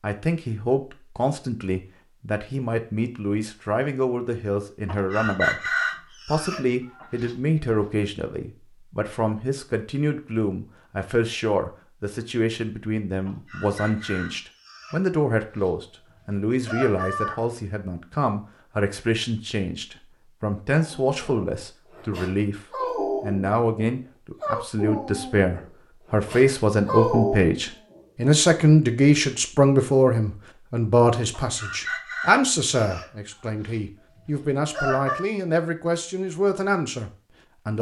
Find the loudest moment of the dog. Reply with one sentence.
The volume of the dog peaks at 27 seconds.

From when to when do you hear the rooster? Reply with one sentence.
You can hear the rooster from 4.8 to 7.9 s, from 13.2 to 17.4 s and from 31.3 to 35.2 s.